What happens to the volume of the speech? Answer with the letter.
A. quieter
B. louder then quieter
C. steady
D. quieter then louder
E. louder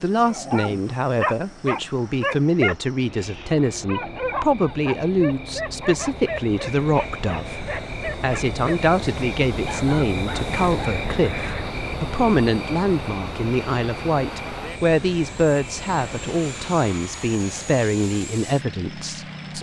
C.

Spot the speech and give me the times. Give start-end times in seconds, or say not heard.
0.0-19.5.